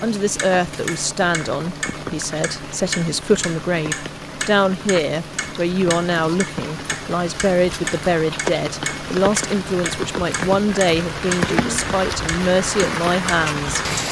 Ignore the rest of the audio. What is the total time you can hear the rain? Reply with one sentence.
The rain can be heard for 14 seconds in total.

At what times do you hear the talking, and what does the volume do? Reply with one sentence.
The talking can be heard from 0.0 to 13.8 s, at a steady volume.